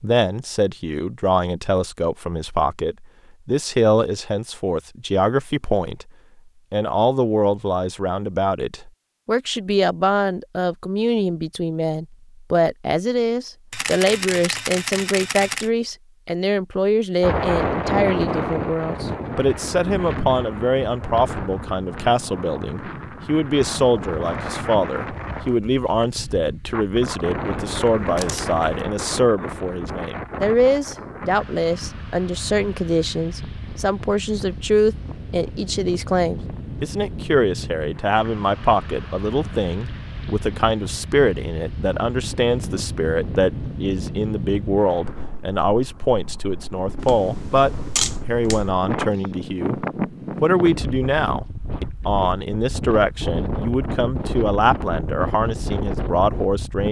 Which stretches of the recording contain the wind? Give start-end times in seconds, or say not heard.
17.2-56.8.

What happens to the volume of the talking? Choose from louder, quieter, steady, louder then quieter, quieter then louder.
steady.